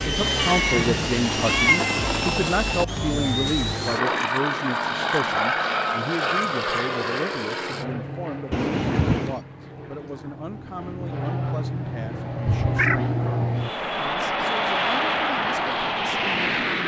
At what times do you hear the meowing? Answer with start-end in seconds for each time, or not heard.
0.3-1.9, 8.5-9.4, 12.4-13.0.